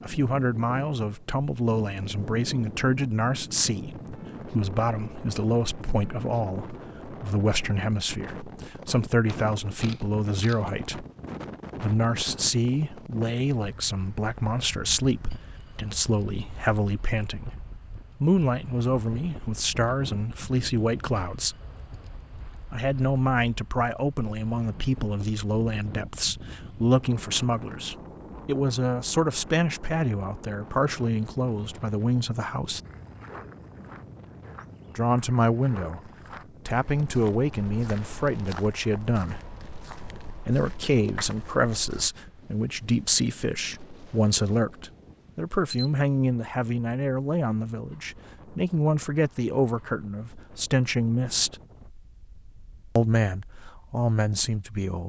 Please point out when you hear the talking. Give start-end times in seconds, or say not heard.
0.0-11.1, 11.8-21.6, 22.7-32.8, 35.0-39.4, 40.5-51.5, 53.0-55.0.